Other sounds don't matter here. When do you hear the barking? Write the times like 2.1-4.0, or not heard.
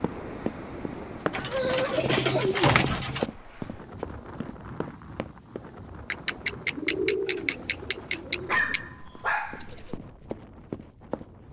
8.4-10.0.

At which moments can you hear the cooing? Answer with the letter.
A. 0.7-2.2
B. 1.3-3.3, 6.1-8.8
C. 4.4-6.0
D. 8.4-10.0
B.